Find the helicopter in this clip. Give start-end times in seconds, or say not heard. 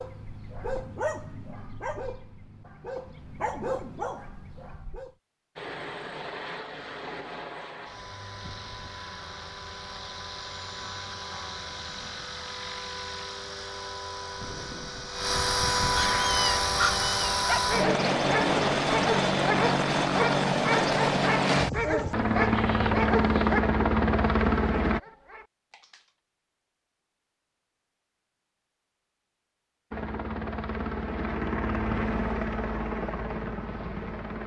5.5-25.0, 29.9-34.4.